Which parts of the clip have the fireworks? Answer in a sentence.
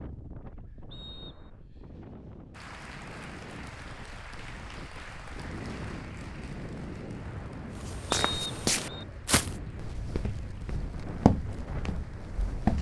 The fireworks can't be heard in this clip.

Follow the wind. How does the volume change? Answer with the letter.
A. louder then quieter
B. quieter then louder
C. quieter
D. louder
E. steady
D.